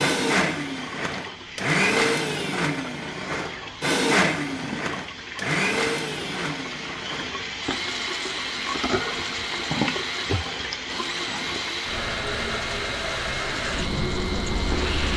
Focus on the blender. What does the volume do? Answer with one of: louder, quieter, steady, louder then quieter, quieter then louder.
quieter.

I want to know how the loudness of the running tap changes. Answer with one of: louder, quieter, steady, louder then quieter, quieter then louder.
louder.